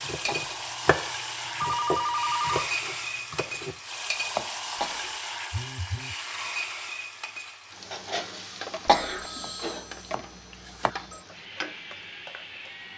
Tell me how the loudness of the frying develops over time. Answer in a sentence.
The volume of the frying goes down.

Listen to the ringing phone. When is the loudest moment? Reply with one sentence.
The loudest moment of the ringing phone is at 2 seconds.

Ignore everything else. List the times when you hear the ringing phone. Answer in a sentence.
You can hear the ringing phone from 1.6 to 2.7 s, from 5.5 to 6.2 s and from 8.9 to 11.2 s.